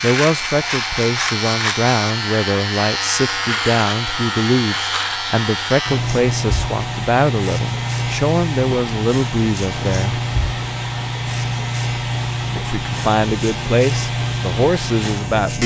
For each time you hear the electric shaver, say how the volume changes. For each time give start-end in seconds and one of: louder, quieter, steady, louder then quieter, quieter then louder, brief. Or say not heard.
0.0-15.6 steady.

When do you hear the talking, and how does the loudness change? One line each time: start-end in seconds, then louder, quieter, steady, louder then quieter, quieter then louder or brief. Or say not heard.
0.0-10.2 steady
12.7-15.6 brief.